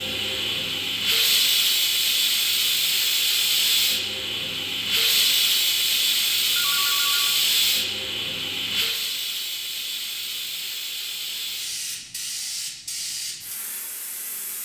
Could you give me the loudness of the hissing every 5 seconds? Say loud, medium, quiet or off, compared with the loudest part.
loud, loud, medium.